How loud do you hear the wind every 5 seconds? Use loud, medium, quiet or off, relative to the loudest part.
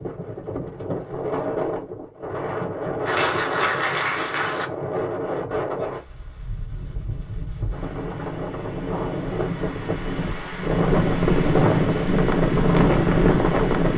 medium, medium, loud.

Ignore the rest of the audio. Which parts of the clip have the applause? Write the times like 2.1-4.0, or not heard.
3.0-4.7.